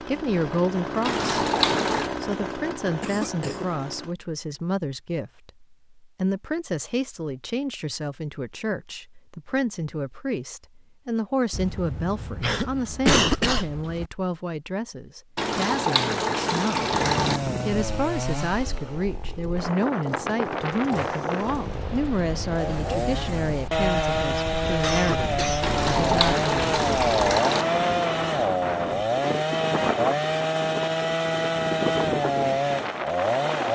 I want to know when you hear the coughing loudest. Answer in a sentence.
The loudest moment of the coughing is at 13 seconds.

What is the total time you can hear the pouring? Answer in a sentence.
The pouring can be heard for 5 seconds in total.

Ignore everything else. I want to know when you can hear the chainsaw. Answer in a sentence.
You can hear the chainsaw from 0.0 to 4.2 s and from 16.9 to 33.6 s.